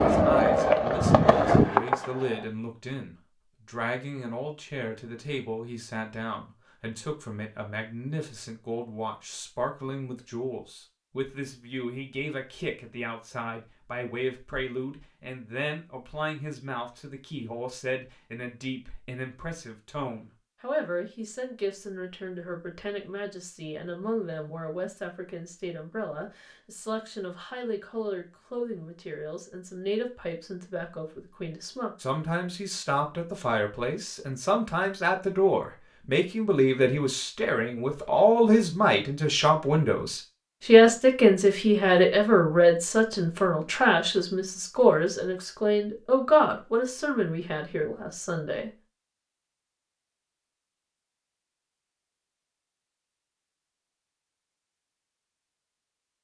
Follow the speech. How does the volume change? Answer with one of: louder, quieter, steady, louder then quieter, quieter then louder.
louder.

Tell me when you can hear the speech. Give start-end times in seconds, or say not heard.
0.0-48.7.